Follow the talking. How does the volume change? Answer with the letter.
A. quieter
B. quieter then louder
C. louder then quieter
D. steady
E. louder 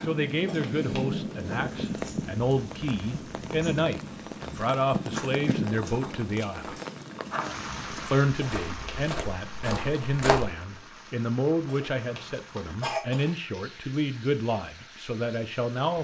D.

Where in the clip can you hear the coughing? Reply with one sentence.
You can hear the coughing from 0.5 to 1.1 s, from 8.4 to 9.0 s and from 11.7 to 13.3 s.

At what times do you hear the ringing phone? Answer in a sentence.
The ringing phone can't be heard in this clip.